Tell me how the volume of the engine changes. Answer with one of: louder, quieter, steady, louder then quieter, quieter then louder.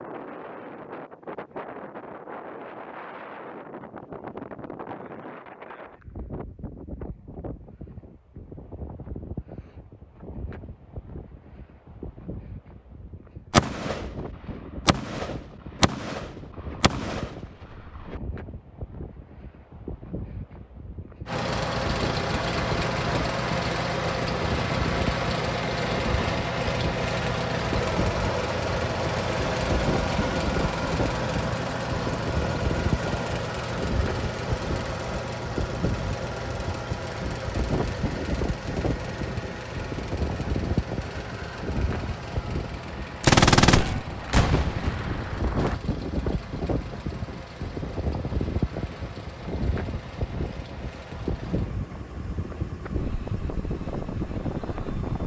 quieter.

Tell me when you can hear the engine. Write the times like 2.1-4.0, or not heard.
21.2-55.2.